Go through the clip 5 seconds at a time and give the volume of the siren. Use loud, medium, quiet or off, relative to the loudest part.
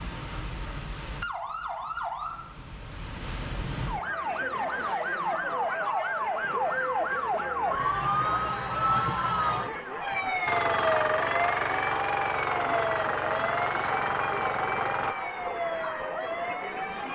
medium, loud, loud, medium.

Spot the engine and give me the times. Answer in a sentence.
The engine can be heard from 10.4 to 15.2 s.